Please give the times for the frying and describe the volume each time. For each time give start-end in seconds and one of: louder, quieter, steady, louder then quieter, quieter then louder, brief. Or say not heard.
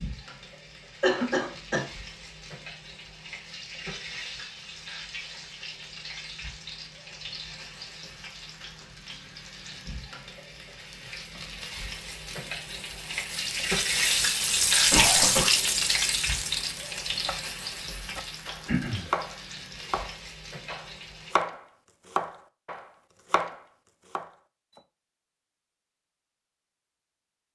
0.0-21.4 louder then quieter.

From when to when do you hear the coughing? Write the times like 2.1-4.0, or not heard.
1.0-1.9, 14.9-15.5, 18.6-19.1.